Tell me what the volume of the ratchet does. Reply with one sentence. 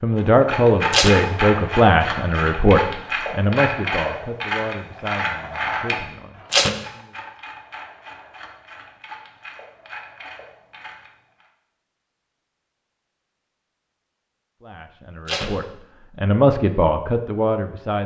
The volume of the ratchet goes down.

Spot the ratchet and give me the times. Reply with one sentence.
The ratchet can be heard from 0.1 to 11.5 s.